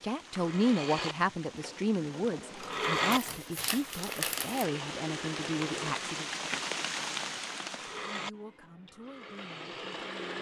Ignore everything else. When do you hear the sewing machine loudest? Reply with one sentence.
The volume of the sewing machine peaks at 3 seconds.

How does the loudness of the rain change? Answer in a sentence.
The loudness of the rain goes up.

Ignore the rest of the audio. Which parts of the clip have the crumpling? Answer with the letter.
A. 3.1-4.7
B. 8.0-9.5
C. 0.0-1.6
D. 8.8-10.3
A.